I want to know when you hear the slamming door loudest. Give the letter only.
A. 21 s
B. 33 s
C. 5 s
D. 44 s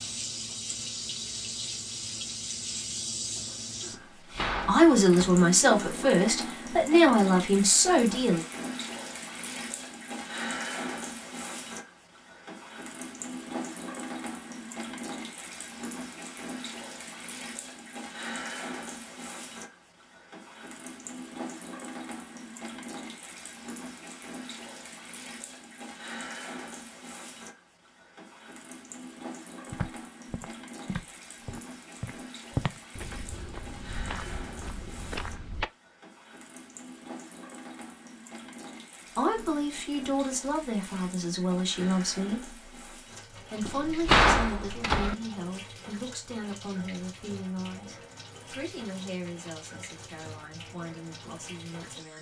D.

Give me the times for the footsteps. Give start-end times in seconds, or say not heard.
29.7-35.7.